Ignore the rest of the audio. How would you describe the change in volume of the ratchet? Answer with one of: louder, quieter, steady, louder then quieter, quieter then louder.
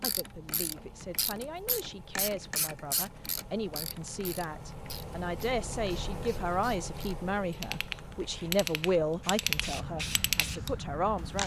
quieter then louder.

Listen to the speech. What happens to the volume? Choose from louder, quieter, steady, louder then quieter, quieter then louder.
louder.